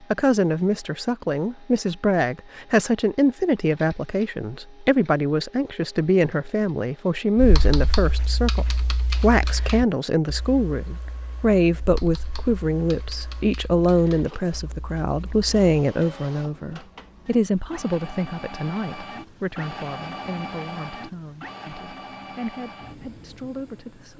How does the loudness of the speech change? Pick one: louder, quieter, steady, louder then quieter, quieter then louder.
quieter.